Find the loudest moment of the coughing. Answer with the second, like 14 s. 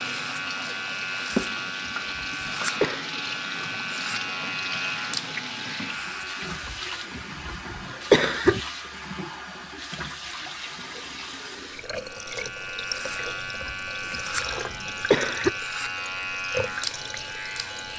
8 s.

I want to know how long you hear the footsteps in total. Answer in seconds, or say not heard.
not heard.